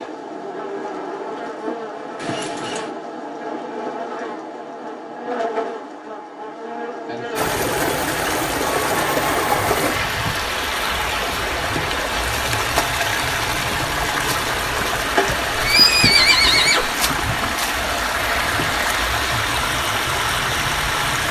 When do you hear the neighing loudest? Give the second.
16 s.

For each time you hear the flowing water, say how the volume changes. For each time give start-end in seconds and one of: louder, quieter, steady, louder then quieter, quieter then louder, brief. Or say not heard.
7.3-21.2 steady.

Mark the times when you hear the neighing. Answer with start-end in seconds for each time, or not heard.
2.1-2.9, 8.8-10.3, 15.2-16.9.